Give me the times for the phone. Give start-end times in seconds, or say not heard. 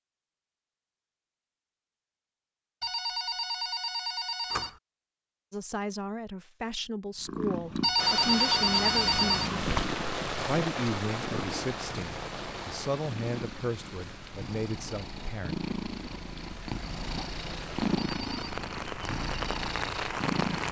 2.8-4.7, 7.8-9.5, 17.9-18.6.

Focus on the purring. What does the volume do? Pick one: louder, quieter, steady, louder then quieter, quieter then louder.
quieter then louder.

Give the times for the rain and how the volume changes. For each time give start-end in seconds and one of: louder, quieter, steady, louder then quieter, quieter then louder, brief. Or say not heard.
8.0-20.6 quieter then louder.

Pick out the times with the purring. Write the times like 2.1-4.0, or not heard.
7.2-20.6.